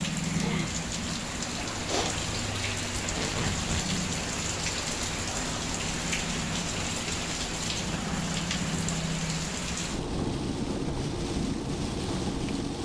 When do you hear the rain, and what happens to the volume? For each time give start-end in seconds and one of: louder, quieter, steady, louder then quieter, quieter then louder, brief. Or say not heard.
0.0-12.8 steady.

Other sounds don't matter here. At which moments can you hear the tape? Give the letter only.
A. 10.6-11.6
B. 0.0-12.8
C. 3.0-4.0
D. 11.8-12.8
C.